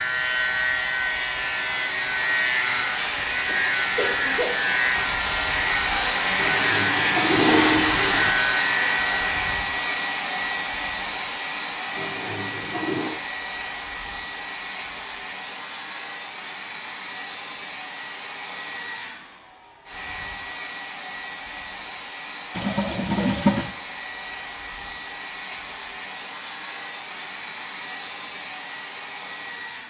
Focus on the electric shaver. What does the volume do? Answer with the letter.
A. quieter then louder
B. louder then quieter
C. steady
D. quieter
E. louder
C.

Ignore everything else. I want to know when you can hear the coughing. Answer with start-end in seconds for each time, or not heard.
3.5-4.7.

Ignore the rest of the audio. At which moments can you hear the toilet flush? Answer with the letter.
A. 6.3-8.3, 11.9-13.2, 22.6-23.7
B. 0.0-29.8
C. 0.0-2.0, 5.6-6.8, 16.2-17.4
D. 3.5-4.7
A.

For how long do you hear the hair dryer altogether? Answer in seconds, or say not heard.
30 s.